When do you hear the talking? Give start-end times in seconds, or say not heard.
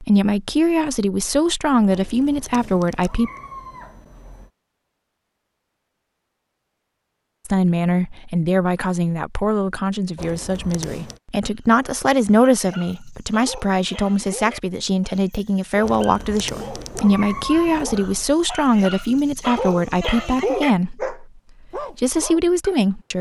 0.0-3.3, 7.5-23.1.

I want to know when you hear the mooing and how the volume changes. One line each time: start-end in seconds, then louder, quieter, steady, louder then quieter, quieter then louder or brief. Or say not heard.
not heard.